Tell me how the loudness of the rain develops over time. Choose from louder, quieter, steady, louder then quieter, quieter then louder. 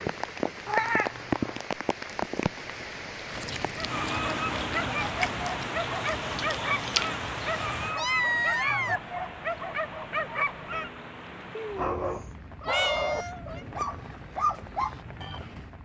quieter.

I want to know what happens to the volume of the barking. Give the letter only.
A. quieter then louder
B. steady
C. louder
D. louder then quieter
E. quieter
B.